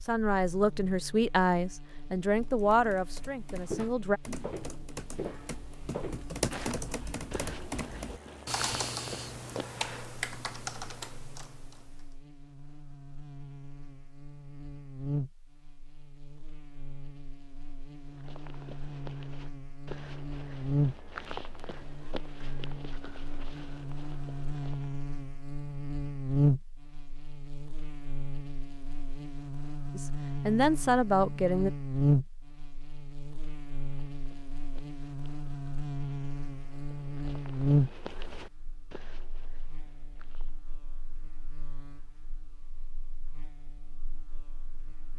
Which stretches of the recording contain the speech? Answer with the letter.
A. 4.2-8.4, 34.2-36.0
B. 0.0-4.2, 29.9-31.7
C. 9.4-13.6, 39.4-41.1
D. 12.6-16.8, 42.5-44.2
B.